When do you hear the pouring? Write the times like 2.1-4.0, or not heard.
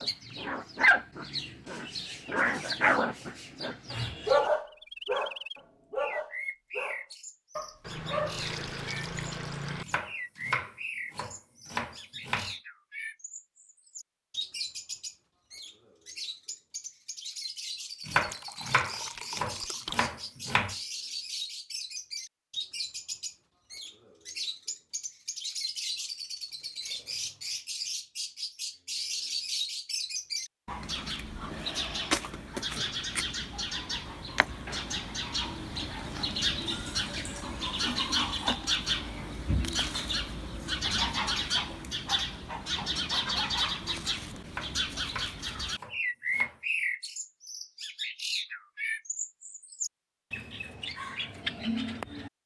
7.8-9.8, 18.1-20.1, 36.6-38.5.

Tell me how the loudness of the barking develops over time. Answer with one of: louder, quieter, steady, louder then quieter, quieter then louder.
quieter.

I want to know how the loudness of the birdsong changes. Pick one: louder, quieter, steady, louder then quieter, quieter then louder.
louder.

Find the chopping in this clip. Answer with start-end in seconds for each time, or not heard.
9.8-12.6, 18.1-20.8, 44.5-46.6.